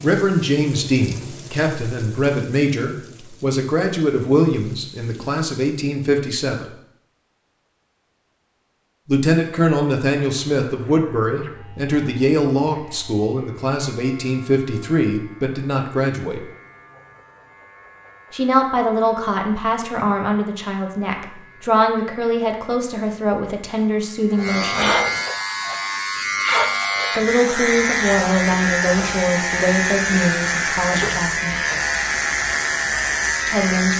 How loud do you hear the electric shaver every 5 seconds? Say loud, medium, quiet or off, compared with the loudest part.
off, off, quiet, quiet, medium, loud, loud.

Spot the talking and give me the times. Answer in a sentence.
You can hear the talking from 0.0 to 6.7 s, from 9.1 to 16.4 s, from 18.3 to 24.9 s, from 27.1 to 31.6 s and from 33.5 to 33.9 s.